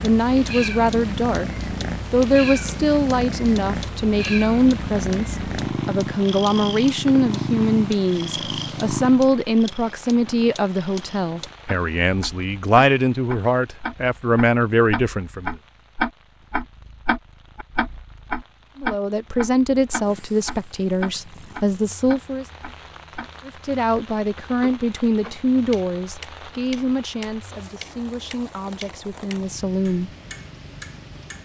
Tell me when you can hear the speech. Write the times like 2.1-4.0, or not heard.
0.0-1.5, 2.1-15.6, 18.8-22.4, 23.4-30.1.